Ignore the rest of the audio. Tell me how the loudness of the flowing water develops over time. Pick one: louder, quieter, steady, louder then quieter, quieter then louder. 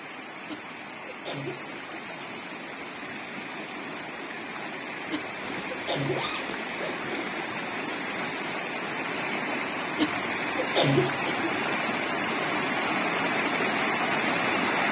louder.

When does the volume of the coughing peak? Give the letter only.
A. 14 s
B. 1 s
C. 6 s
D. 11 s
D.